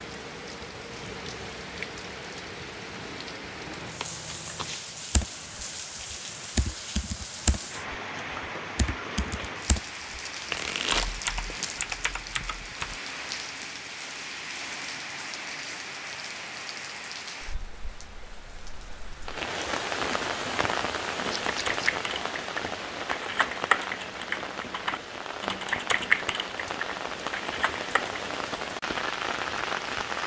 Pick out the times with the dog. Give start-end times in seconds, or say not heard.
not heard.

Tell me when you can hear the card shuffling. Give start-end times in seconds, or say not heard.
3.6-4.8, 10.5-11.9, 21.4-21.9.